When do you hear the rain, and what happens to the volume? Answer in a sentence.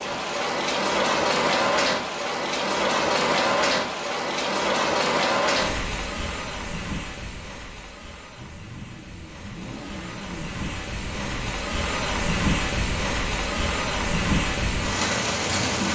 You can hear the rain from 0.0 to 15.9 s, getting quieter then louder.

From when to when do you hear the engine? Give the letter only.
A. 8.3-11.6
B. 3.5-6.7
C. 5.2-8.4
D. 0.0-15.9
A.